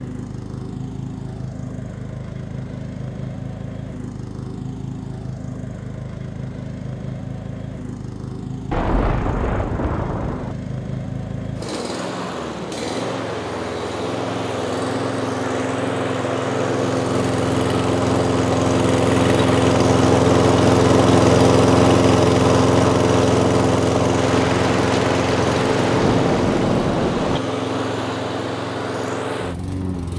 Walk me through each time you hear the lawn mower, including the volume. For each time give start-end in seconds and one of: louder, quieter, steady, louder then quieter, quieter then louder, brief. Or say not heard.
0.0-30.1 louder then quieter.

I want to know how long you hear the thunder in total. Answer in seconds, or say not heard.
5 s.